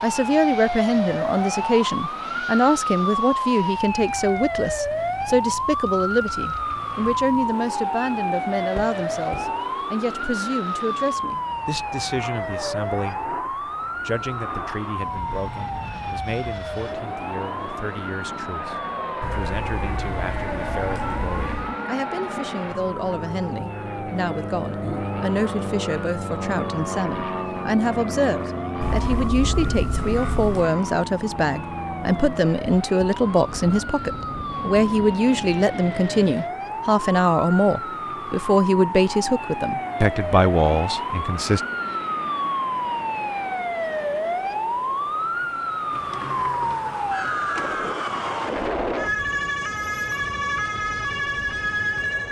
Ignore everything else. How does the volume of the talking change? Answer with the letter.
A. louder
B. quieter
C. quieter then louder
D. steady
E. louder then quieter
C.